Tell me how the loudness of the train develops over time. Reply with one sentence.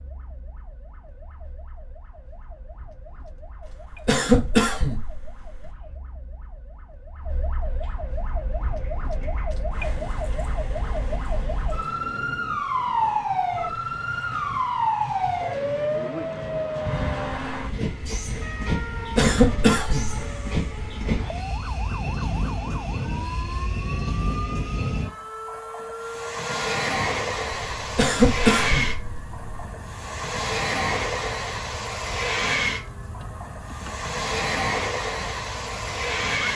The loudness of the train goes up.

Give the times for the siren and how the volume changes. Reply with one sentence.
You can hear the siren from 0.0 to 36.5 s, getting louder then quieter.